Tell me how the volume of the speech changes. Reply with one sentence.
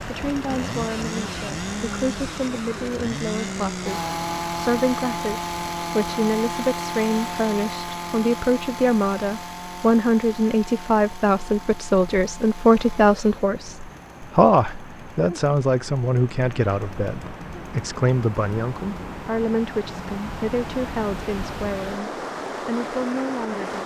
The volume of the speech goes up, then down.